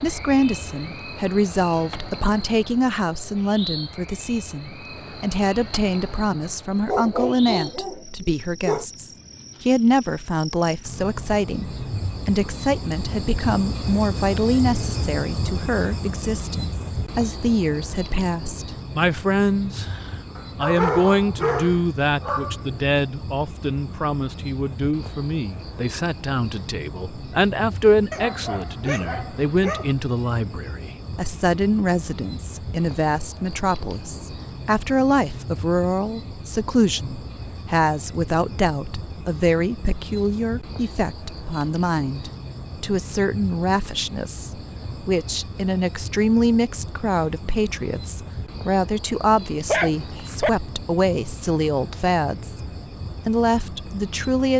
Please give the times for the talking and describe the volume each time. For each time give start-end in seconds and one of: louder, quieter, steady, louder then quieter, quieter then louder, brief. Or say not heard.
0.0-54.5 steady.